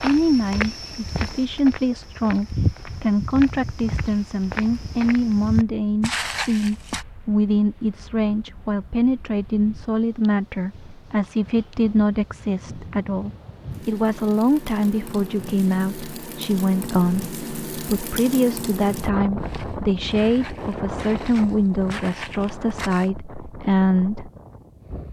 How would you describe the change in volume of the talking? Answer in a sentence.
The volume of the talking stays about the same.